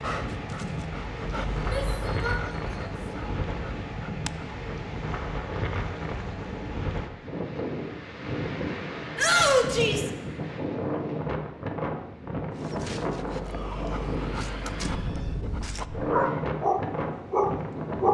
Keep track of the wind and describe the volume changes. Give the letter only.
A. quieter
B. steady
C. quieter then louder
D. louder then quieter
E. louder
B.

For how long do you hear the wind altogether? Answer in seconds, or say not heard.
18 s.